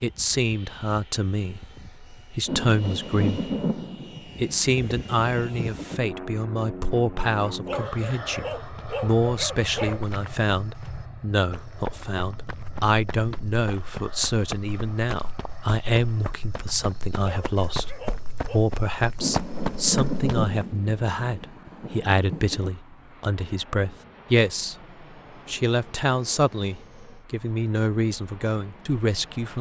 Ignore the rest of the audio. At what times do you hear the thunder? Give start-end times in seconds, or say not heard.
2.5-6.0, 19.1-22.7.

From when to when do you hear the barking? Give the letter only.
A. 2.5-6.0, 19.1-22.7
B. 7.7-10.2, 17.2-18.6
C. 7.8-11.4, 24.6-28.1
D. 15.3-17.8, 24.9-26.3
B.